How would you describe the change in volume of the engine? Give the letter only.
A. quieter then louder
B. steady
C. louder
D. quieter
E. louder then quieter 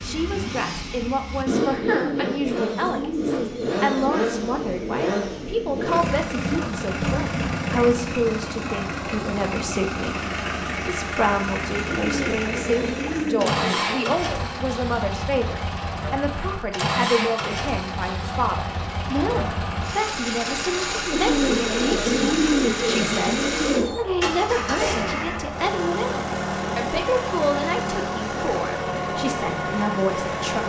B.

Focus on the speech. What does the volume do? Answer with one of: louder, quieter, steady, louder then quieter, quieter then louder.
steady.